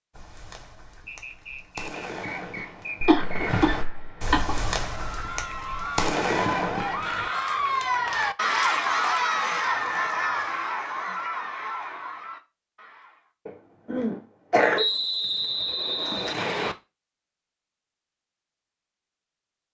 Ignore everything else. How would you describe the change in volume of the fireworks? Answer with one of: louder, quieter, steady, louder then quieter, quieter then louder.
louder.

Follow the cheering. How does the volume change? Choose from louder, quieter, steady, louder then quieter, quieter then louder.
louder then quieter.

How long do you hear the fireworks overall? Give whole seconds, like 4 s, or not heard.
7 s.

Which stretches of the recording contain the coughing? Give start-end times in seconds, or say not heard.
3.0-4.8, 13.4-14.8.